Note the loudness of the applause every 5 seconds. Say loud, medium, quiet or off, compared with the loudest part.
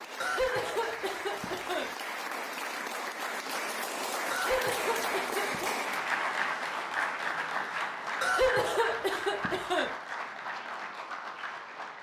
loud, loud, medium.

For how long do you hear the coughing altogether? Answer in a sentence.
You can hear the coughing for 5 seconds altogether.